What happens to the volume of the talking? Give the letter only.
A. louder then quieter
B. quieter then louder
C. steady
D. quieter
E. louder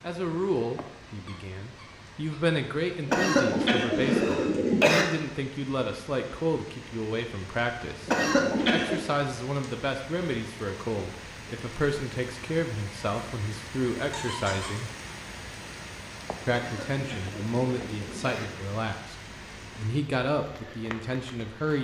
C.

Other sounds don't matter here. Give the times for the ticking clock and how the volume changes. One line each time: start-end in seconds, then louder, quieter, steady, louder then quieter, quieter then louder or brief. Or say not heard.
not heard.